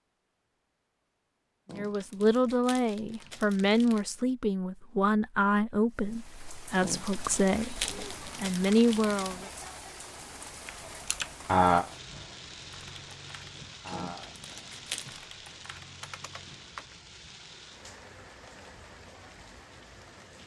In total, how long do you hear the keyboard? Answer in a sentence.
You can hear the keyboard for 6 seconds altogether.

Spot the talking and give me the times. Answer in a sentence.
You can hear the talking from 1.7 to 9.4 s.